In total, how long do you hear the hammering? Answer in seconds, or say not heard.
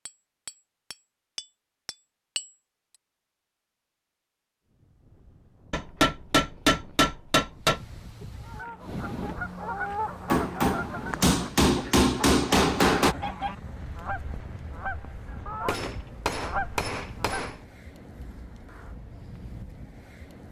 9 s.